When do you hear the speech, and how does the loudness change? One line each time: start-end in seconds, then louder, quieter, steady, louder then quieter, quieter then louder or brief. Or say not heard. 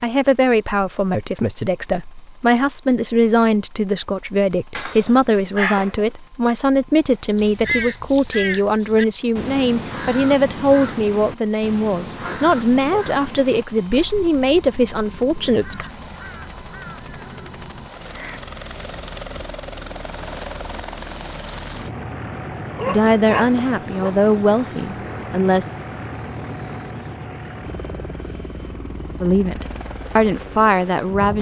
0.0-15.9 steady
22.9-25.6 brief
29.2-31.3 brief.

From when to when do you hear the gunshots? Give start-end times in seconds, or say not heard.
not heard.